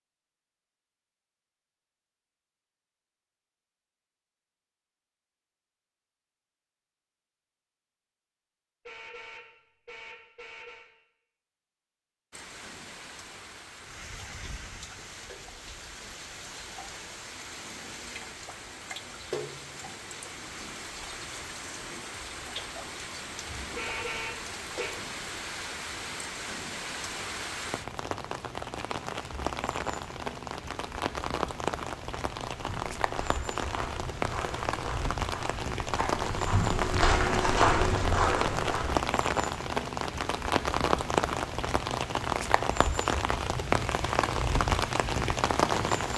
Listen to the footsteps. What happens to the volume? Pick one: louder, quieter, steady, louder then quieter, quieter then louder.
louder.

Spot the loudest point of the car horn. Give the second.
24 s.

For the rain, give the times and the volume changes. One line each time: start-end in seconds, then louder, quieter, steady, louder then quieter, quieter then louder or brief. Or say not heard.
12.3-46.1 louder.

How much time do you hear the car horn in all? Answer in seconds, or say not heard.
3 s.